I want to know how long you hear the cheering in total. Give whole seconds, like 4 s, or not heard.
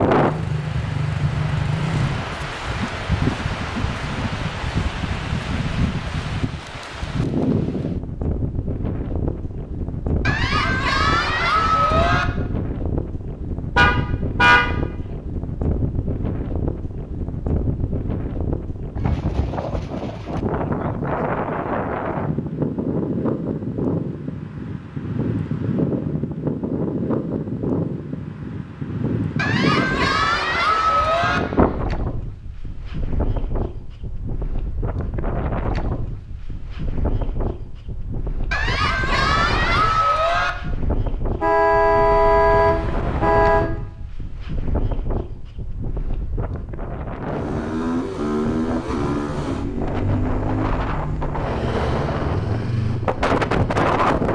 6 s.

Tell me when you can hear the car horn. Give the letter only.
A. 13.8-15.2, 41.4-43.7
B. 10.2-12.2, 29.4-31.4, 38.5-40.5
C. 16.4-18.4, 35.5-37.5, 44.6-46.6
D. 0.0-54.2
A.